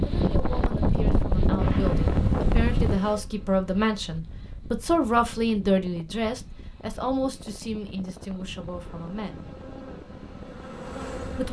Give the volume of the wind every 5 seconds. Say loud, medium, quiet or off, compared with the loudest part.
loud, quiet, quiet.